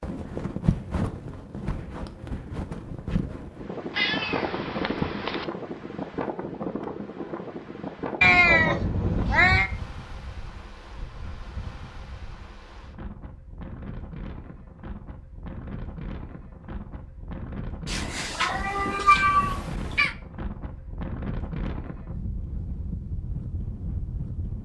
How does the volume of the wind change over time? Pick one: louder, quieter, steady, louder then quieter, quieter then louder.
quieter then louder.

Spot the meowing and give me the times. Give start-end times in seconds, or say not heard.
3.9-5.5, 8.2-9.7, 17.9-20.1.